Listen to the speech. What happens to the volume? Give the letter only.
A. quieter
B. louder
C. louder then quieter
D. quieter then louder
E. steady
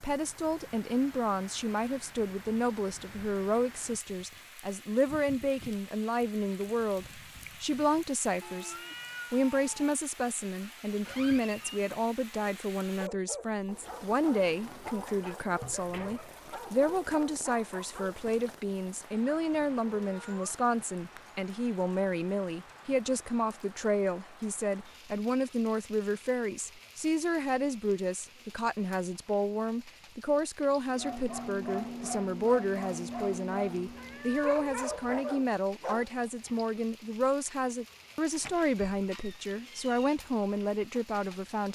E.